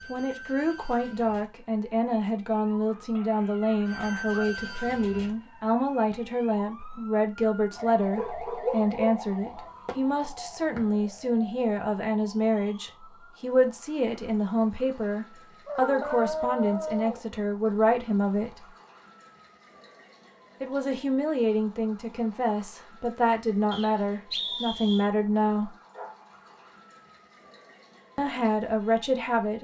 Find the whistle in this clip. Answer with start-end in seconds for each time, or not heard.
23.7-25.1.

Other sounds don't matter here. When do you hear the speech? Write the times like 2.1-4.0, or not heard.
0.1-18.7, 20.6-25.8, 28.1-29.5.